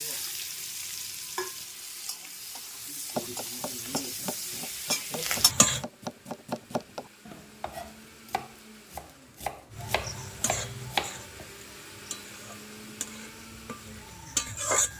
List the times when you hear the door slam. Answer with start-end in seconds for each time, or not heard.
not heard.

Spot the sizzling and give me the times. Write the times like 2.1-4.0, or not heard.
0.0-5.8, 9.7-14.9.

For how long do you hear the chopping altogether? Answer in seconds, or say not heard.
8 s.